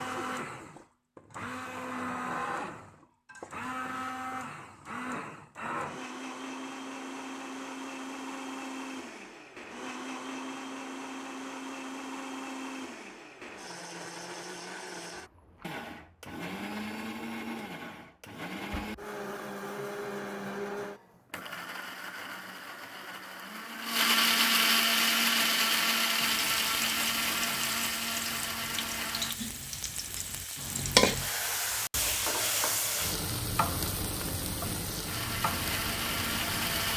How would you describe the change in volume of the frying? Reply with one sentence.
The volume of the frying goes up, then down.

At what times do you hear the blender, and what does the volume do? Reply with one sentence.
The blender can be heard from 0.0 to 29.4 s, getting louder; and briefly from 35.0 to 36.9 s.